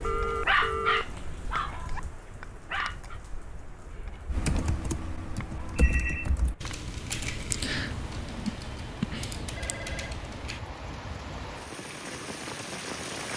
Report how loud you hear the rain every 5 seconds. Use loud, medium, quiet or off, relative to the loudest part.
medium, medium, loud.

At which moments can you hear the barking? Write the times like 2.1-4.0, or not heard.
0.5-2.0, 2.6-3.2.